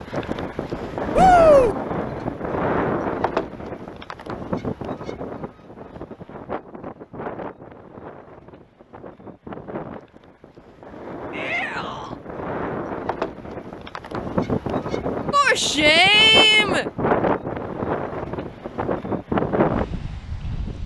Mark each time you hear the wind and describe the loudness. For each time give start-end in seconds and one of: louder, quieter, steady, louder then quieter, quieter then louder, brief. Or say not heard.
0.0-20.8 quieter then louder.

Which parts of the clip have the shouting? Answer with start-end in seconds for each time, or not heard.
1.1-1.8, 11.3-12.2, 15.3-16.9.